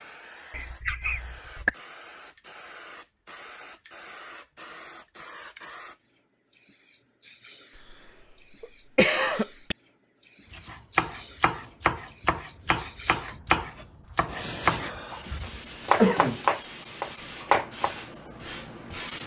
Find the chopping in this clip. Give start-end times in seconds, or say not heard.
10.5-18.0.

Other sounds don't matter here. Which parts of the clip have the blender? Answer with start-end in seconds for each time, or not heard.
not heard.